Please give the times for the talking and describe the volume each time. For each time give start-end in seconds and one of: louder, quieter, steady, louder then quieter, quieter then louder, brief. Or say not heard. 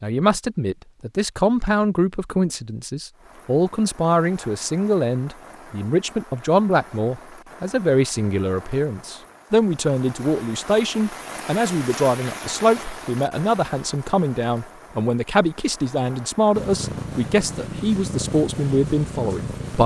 0.0-19.8 steady.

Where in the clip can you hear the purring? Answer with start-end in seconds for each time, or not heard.
16.6-19.8.